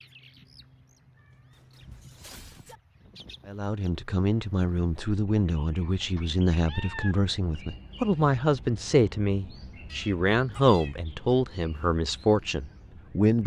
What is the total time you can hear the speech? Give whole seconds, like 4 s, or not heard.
10 s.